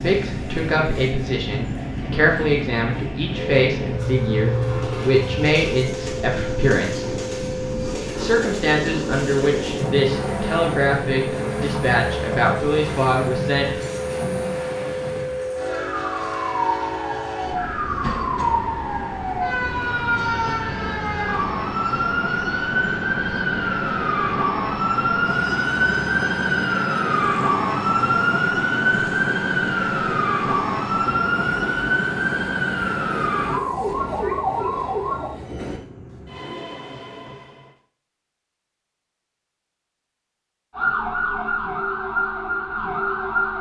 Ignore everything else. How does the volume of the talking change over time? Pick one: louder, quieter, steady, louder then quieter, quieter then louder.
steady.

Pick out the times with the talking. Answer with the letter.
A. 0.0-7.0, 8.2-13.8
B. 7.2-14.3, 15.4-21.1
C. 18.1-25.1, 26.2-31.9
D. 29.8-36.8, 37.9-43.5
A.